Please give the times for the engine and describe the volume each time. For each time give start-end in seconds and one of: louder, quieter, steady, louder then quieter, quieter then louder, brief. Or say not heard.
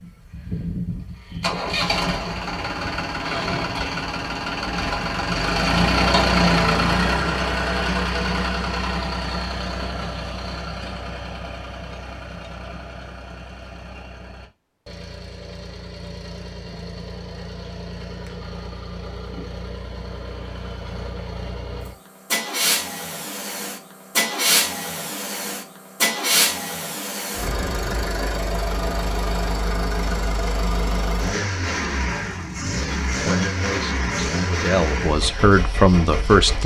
0.0-36.6 quieter then louder.